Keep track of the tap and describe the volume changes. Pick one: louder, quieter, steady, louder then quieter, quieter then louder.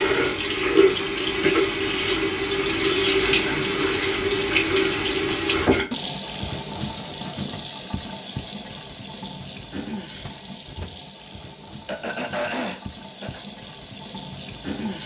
quieter.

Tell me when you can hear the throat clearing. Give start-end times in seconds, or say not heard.
3.2-3.8, 11.8-13.4.